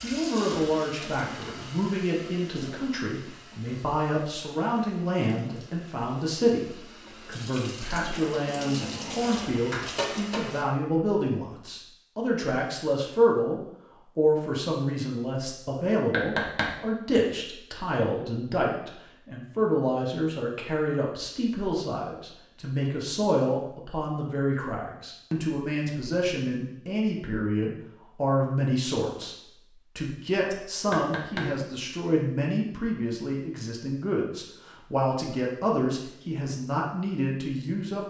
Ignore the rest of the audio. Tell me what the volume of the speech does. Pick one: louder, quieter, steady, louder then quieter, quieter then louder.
steady.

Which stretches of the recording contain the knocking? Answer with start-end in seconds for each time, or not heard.
16.1-16.8, 30.9-31.6.